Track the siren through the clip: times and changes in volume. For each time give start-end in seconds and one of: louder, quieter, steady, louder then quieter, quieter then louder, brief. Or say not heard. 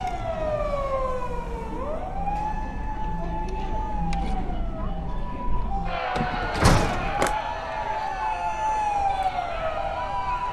0.0-10.4 quieter then louder.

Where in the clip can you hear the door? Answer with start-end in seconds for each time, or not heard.
6.2-7.3.